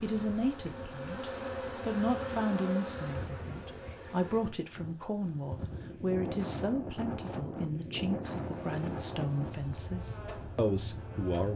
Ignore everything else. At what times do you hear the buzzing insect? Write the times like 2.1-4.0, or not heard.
0.0-4.6, 8.3-11.5.